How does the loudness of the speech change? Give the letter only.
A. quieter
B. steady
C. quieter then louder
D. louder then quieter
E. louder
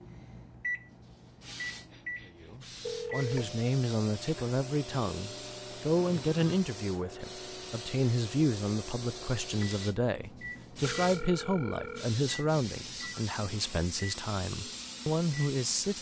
B.